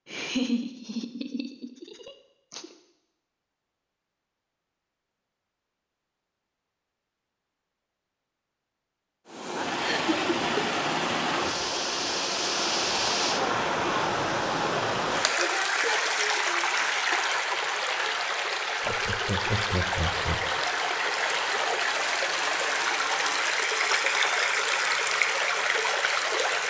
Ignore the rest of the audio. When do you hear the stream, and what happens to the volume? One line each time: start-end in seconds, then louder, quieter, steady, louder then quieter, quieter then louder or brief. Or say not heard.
9.2-26.6 steady.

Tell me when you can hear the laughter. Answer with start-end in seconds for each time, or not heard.
0.1-2.8, 9.8-10.7, 18.9-20.6.